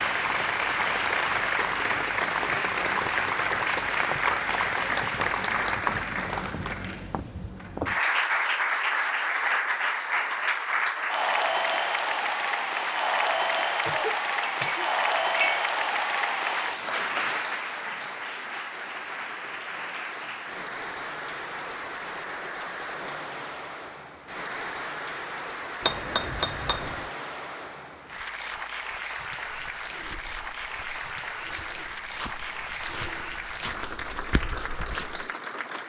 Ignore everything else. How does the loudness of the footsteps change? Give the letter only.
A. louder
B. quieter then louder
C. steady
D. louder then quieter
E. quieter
A.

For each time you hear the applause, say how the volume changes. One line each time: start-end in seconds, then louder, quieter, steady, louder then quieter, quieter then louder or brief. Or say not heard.
0.0-35.8 quieter.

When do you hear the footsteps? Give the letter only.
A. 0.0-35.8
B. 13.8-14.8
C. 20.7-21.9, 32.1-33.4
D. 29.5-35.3
D.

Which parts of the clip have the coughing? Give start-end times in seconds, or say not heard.
13.8-14.8.